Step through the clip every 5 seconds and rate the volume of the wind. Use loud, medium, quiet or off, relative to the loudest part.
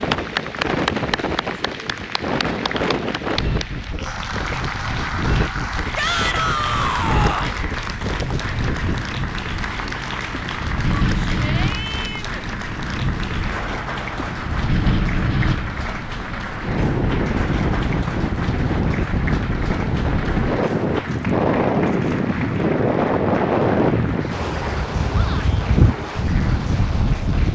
medium, medium, medium, loud, loud, loud.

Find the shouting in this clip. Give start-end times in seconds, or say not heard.
6.0-7.5, 10.9-12.4, 25.1-25.6.